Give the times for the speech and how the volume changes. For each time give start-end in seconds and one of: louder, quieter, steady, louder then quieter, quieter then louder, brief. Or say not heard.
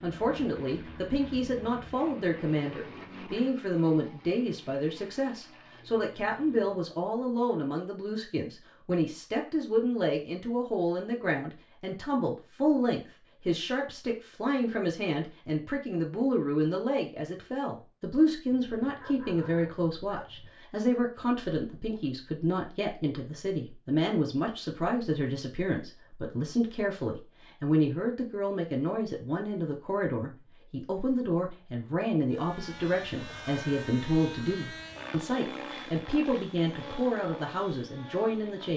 0.0-38.7 steady.